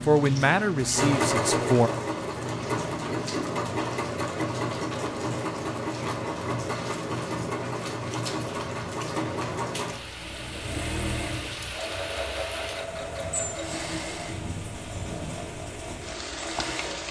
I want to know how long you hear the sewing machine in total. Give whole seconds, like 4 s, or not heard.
17 s.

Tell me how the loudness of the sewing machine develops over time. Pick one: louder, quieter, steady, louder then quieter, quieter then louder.
quieter.